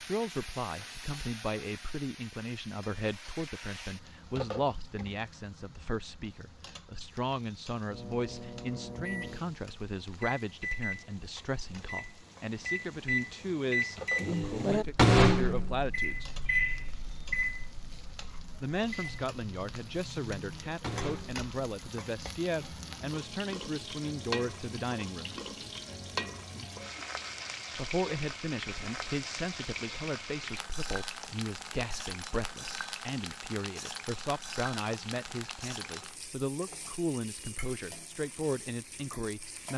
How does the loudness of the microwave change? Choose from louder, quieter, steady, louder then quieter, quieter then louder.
louder then quieter.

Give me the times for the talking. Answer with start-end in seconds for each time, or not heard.
0.0-16.3, 18.6-25.4, 27.8-39.7.